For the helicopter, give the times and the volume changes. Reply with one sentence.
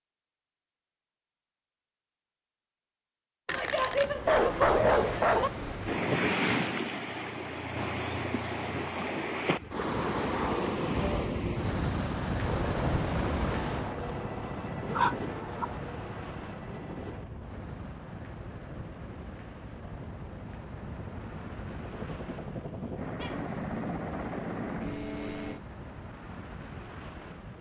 You can hear the helicopter from 12.4 to 25.6 s, getting quieter then louder.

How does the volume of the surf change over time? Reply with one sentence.
The volume of the surf goes down.